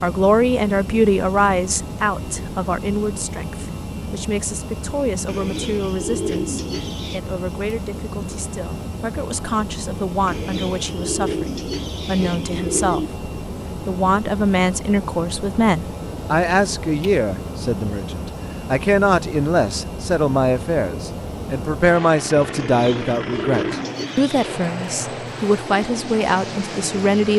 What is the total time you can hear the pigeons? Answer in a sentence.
The pigeons can be heard for 7 seconds in total.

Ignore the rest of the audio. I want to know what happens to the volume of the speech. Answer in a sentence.
The loudness of the speech goes down, then up.